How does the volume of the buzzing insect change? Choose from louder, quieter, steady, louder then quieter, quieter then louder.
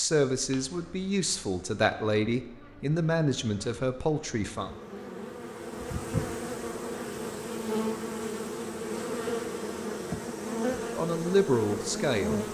louder.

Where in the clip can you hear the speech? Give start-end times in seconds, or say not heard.
0.0-4.7, 10.8-12.4.